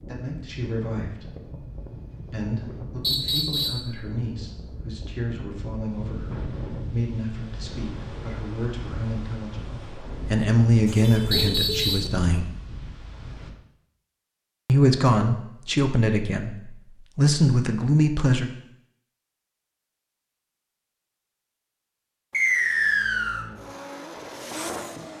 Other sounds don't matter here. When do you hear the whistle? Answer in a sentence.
You can hear the whistle from 3.0 to 3.9 s, from 11.3 to 12.1 s and from 22.3 to 23.4 s.